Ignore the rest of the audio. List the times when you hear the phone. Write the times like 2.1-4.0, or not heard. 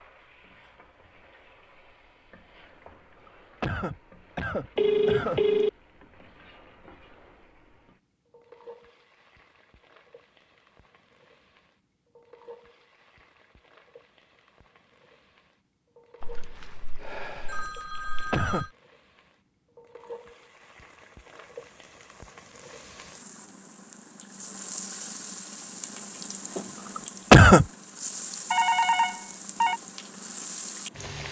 4.8-5.7, 16.2-18.7, 28.5-29.8.